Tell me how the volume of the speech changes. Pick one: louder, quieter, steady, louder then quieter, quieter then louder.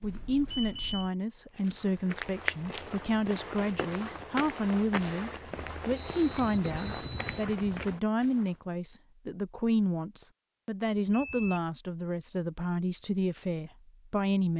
steady.